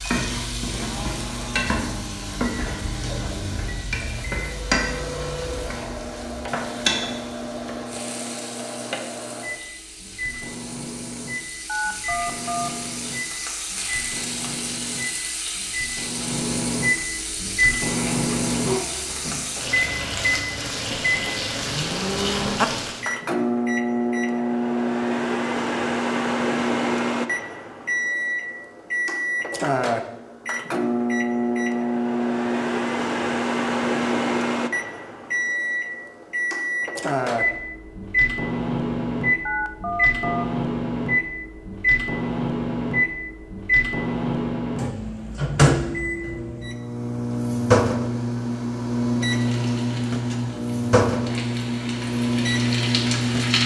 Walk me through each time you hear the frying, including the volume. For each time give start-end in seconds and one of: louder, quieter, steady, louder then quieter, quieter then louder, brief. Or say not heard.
0.0-23.1 quieter then louder
49.2-53.6 quieter then louder.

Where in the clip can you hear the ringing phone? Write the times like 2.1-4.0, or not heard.
11.7-12.7, 39.5-40.5.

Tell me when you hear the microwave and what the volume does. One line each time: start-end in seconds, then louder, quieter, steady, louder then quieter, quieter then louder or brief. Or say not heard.
0.0-53.6 louder.